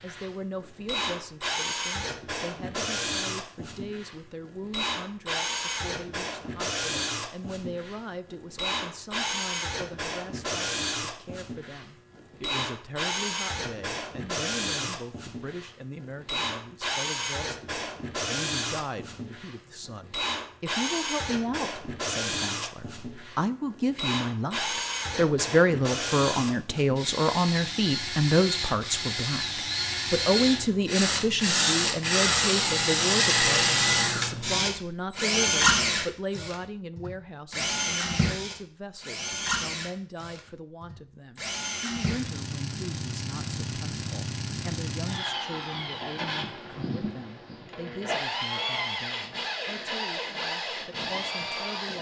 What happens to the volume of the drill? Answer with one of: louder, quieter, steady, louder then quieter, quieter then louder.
louder then quieter.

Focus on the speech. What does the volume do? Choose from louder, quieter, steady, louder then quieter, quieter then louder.
louder then quieter.